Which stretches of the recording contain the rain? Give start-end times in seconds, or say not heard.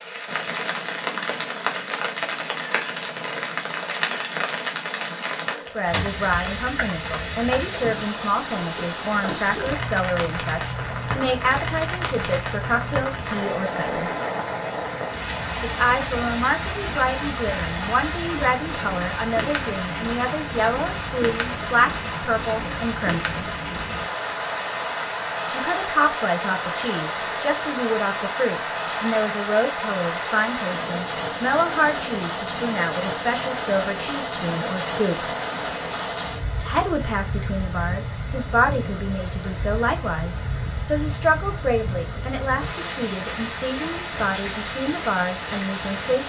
0.0-46.2.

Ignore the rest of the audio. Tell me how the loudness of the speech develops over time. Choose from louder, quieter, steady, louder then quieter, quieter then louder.
steady.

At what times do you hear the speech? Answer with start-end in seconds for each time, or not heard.
5.5-14.1, 15.6-23.4, 25.5-35.2, 36.5-46.2.